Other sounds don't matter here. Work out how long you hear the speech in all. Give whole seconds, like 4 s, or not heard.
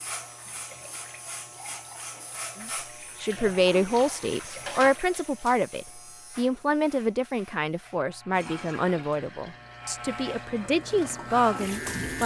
10 s.